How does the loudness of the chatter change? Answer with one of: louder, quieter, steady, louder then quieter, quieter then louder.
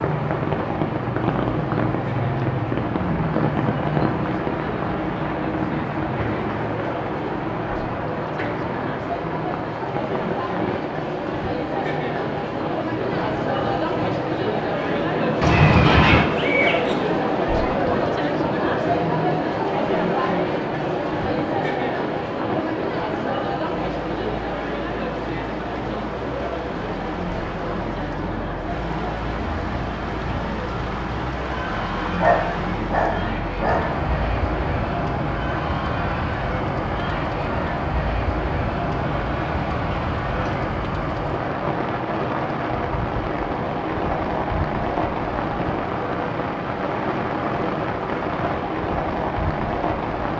louder then quieter.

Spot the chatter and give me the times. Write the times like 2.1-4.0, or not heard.
0.0-40.7.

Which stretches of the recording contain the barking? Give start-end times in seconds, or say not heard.
15.4-16.9, 32.2-33.9.